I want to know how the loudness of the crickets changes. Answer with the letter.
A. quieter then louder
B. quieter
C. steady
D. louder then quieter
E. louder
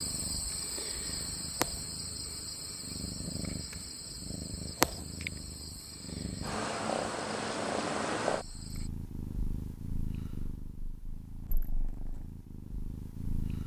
B.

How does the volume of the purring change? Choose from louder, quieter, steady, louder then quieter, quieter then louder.
louder then quieter.